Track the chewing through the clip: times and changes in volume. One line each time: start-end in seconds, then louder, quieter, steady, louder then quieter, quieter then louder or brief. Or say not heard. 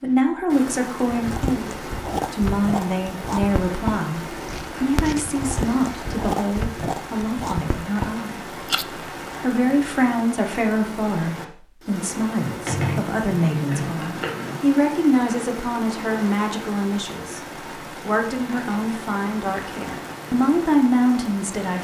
1.1-8.8 steady.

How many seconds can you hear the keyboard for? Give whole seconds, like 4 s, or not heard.
2 s.